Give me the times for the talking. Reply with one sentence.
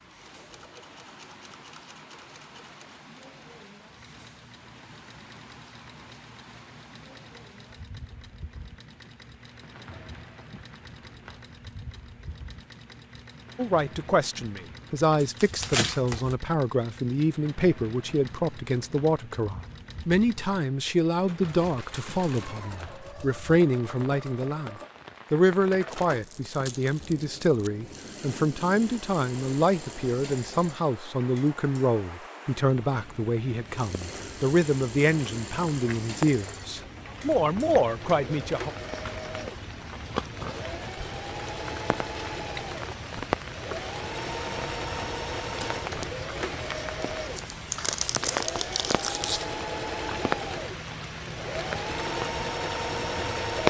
You can hear the talking from 13.6 to 38.7 s.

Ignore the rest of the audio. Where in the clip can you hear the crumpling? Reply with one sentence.
You can hear the crumpling from 15.2 to 16.4 s, from 25.9 to 27.7 s and from 47.0 to 49.5 s.